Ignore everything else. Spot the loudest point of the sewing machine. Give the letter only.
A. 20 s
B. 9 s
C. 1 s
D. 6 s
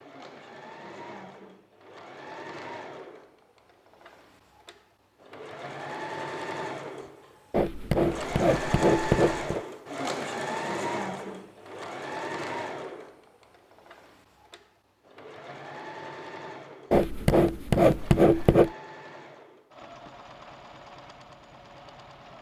B.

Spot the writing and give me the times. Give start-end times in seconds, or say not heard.
7.5-9.6, 16.9-18.7.